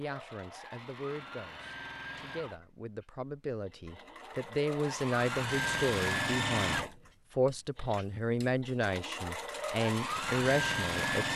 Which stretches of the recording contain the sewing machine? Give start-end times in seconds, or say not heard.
0.0-11.3.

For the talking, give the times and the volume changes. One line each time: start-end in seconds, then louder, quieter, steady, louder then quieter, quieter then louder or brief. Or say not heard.
0.0-11.3 louder.